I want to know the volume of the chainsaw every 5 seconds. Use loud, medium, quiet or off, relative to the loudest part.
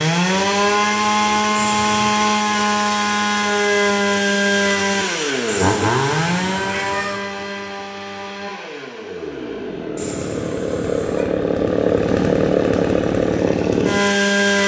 loud, medium, loud.